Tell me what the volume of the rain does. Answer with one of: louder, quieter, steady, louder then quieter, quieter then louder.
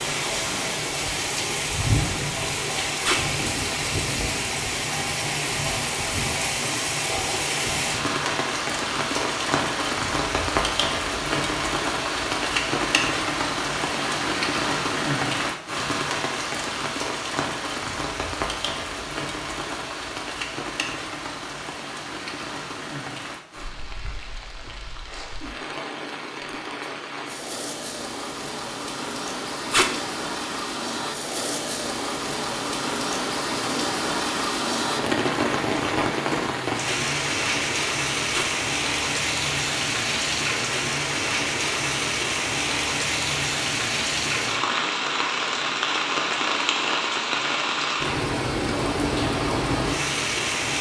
quieter then louder.